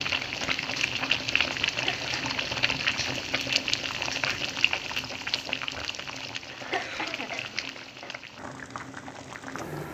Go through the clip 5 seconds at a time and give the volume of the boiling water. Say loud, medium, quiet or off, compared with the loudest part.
loud, medium.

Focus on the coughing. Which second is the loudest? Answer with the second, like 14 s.
7 s.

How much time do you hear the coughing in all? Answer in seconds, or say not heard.
2 s.